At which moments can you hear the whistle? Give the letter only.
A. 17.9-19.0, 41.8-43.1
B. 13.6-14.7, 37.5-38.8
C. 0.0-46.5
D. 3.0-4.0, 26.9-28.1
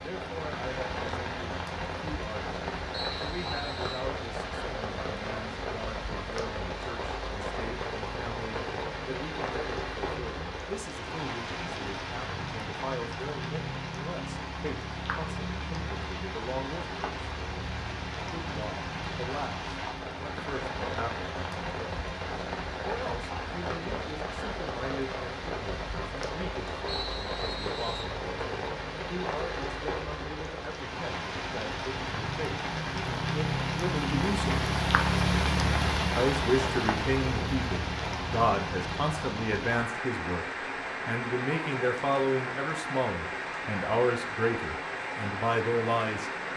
D.